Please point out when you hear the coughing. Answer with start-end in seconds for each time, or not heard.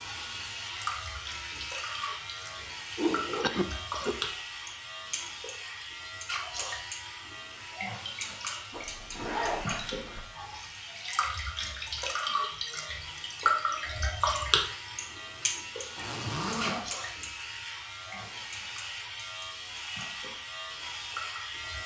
3.4-4.2.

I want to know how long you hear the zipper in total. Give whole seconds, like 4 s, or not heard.
3 s.